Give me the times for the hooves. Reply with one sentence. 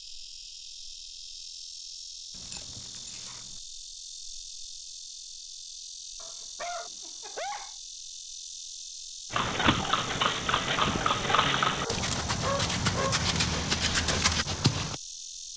The hooves can be heard from 9.3 to 15.0 s.